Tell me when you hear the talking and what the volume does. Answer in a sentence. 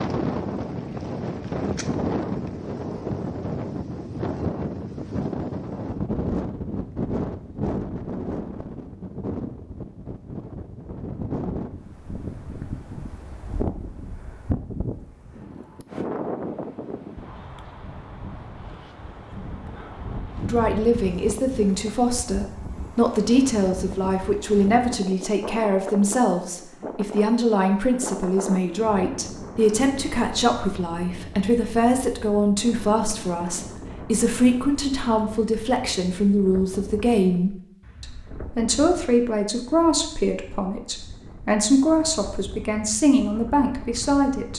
The talking can be heard from 20.4 to 44.5 s, at a steady volume.